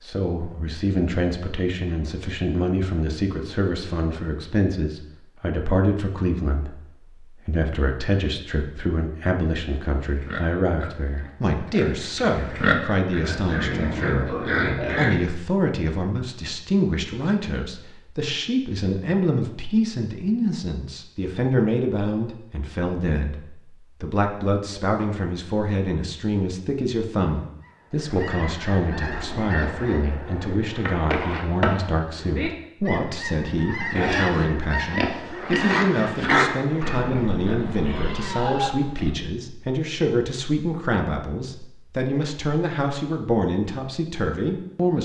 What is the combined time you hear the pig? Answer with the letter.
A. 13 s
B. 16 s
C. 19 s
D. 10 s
D.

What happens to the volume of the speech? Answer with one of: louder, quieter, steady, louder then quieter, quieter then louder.
steady.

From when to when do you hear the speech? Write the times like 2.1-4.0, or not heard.
0.0-44.9.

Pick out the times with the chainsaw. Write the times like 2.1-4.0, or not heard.
not heard.